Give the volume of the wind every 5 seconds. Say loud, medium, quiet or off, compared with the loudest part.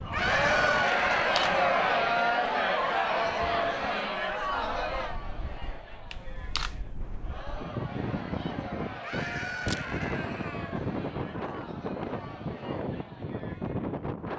medium, loud, loud.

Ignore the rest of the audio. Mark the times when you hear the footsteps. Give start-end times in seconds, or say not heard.
not heard.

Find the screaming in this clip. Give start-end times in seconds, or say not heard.
0.1-1.8, 9.0-10.8.